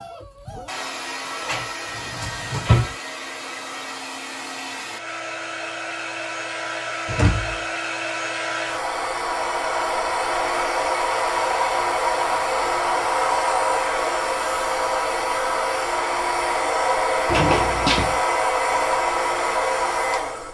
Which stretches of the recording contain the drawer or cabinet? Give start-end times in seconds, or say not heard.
1.4-3.0, 7.0-7.7, 17.2-18.2.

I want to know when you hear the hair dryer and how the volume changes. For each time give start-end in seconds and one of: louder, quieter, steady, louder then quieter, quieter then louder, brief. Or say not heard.
0.0-20.5 louder.